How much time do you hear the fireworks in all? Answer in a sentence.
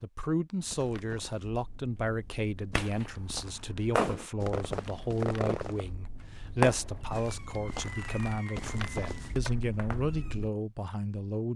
You can hear the fireworks for 8 seconds altogether.